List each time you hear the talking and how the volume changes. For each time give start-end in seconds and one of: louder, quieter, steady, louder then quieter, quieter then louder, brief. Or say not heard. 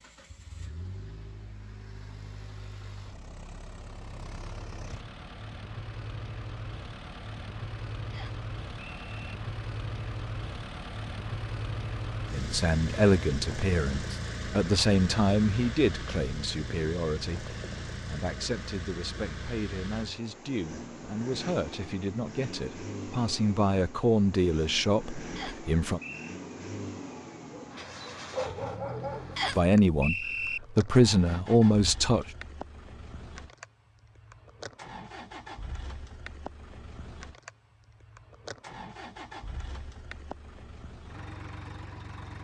12.3-26.0 quieter then louder
29.6-32.2 brief.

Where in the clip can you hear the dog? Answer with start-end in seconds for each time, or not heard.
26.9-29.4.